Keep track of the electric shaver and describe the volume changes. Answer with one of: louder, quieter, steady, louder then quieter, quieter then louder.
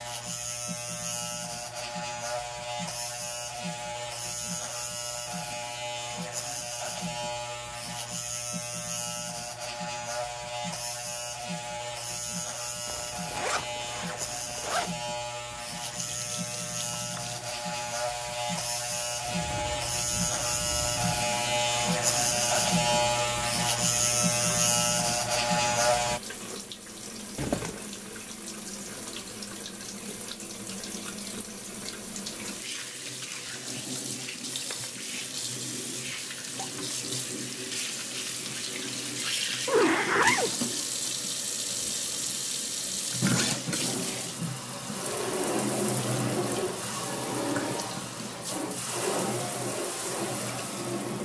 louder.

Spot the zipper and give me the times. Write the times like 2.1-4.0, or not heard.
12.8-14.9, 27.4-27.9, 39.6-40.6.